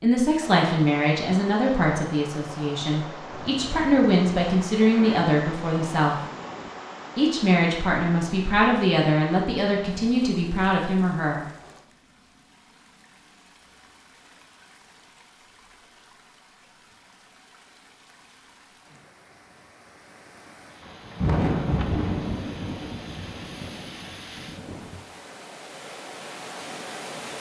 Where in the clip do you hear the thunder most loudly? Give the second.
21 s.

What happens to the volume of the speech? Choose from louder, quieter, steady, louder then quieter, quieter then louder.
steady.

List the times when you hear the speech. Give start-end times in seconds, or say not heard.
0.0-6.2, 7.2-11.4.